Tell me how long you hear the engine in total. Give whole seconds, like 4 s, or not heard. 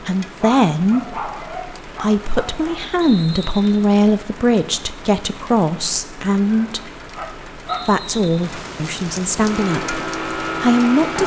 2 s.